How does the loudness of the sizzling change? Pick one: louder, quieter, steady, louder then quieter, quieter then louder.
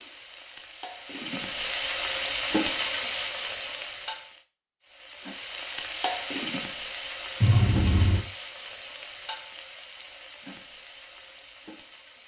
quieter.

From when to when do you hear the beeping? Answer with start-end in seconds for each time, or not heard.
7.4-8.2.